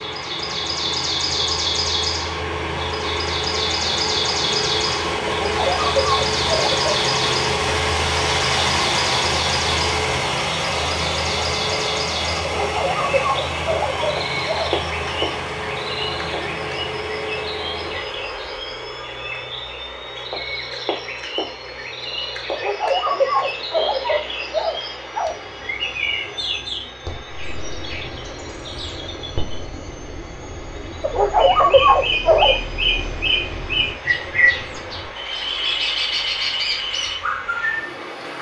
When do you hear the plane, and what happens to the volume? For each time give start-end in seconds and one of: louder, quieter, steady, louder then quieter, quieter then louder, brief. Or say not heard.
0.0-38.3 quieter.